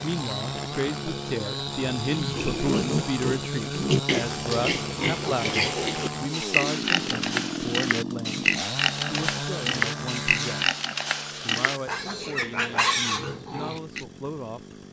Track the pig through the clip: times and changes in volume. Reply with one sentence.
The pig can be heard from 2.1 to 14.1 s, at a steady volume.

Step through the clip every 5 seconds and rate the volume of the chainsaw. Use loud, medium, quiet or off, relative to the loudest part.
loud, loud, medium.